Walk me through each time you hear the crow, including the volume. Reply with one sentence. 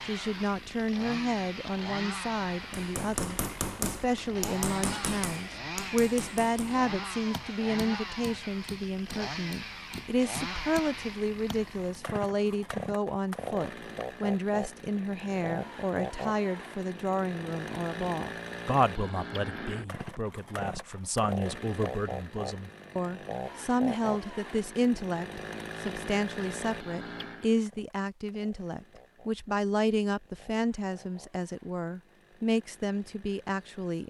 You can't hear the crow here.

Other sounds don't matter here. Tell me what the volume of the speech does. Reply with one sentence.
The volume of the speech stays about the same.